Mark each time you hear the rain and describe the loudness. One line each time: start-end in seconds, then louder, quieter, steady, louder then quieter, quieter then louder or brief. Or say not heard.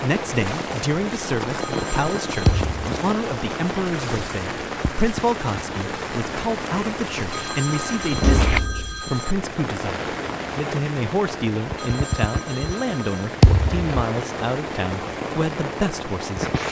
0.0-16.6 steady.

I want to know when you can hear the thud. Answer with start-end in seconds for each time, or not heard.
2.5-3.0, 8.2-9.0, 13.4-13.9.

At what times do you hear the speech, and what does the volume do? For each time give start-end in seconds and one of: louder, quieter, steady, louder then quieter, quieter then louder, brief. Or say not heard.
0.0-16.5 steady.